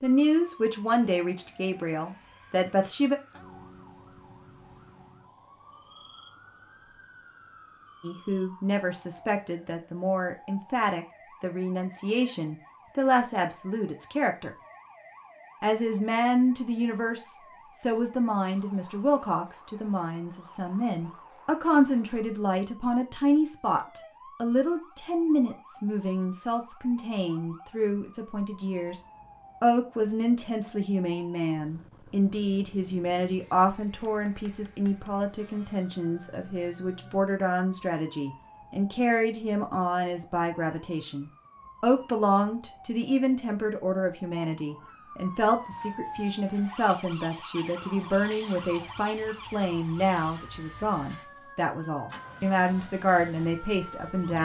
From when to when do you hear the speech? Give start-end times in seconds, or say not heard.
0.0-3.1, 8.0-14.5, 15.6-29.0, 29.6-54.4.